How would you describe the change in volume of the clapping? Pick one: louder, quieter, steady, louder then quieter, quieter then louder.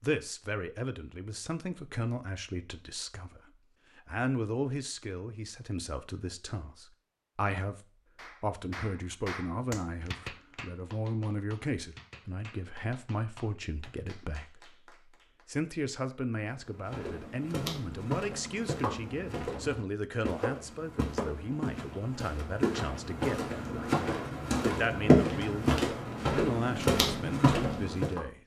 quieter.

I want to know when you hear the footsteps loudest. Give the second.
25 s.